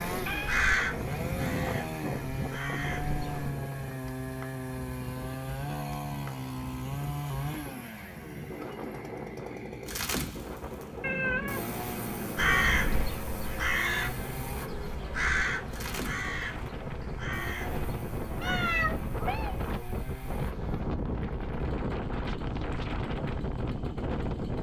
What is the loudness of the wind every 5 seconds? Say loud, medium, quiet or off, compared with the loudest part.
loud, medium, medium, loud, loud.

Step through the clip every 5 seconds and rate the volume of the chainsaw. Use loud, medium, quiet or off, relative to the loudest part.
loud, loud, loud, medium, medium.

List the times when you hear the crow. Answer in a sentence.
You can hear the crow from 0.2 to 3.5 s and from 12.3 to 18.9 s.